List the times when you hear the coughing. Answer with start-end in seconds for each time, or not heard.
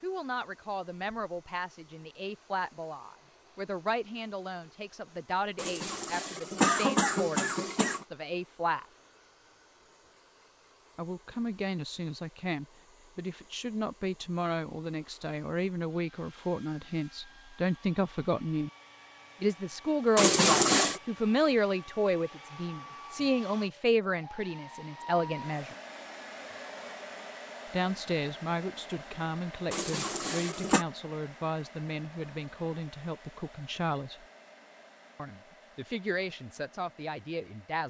5.5-8.1, 20.1-21.0, 29.7-30.9.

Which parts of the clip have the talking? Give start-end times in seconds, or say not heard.
0.0-8.8, 10.9-18.7, 19.4-25.8, 27.7-34.2, 35.1-37.8.